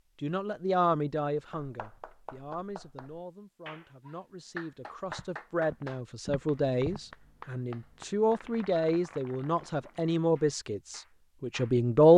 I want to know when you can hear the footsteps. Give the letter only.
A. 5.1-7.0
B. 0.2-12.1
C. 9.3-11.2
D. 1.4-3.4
A.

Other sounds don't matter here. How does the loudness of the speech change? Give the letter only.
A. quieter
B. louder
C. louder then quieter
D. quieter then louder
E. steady
D.